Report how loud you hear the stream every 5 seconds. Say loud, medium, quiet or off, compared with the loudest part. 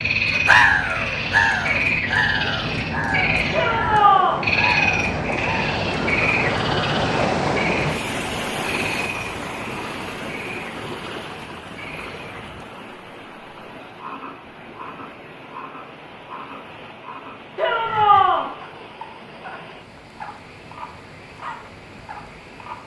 medium, loud, medium, quiet, quiet.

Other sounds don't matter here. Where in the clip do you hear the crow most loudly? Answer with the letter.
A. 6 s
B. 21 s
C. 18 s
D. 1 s
D.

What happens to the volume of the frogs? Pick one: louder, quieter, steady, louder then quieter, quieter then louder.
quieter.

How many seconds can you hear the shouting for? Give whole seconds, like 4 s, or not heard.
2 s.